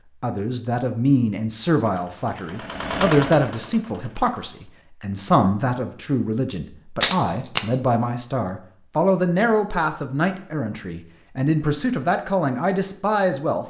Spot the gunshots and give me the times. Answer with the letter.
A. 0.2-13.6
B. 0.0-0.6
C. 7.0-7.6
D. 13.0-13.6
C.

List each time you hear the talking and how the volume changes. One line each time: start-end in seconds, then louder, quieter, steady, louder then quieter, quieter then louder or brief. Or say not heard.
0.2-13.6 steady.